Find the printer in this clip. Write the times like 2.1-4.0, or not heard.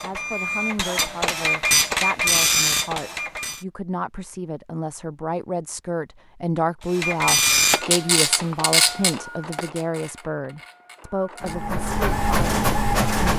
0.0-3.6, 6.9-13.3.